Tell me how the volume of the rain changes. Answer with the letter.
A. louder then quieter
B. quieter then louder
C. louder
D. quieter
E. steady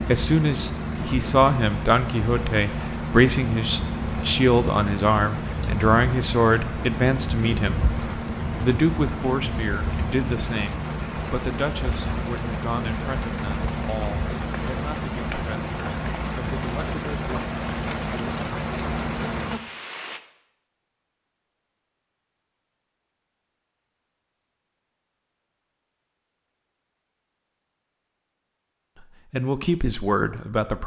E.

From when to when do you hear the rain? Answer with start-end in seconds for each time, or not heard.
0.0-20.2.